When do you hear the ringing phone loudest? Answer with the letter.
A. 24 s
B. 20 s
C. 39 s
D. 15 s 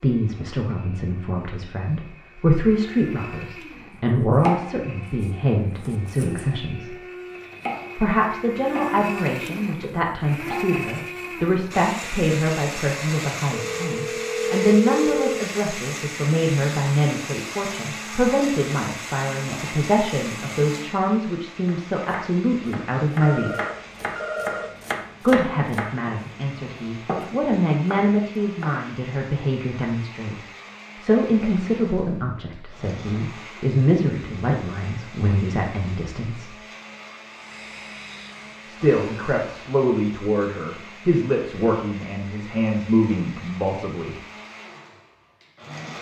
D.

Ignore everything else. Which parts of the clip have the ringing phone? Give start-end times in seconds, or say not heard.
13.5-15.2, 23.2-24.8.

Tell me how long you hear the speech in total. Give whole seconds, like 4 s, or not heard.
39 s.